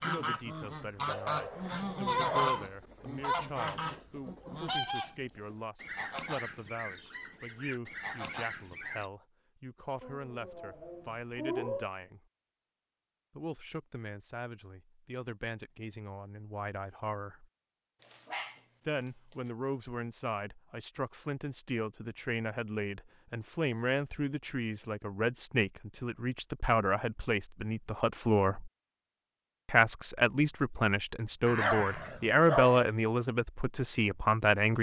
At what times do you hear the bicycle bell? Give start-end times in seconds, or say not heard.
not heard.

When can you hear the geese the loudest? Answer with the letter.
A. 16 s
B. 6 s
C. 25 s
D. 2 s
D.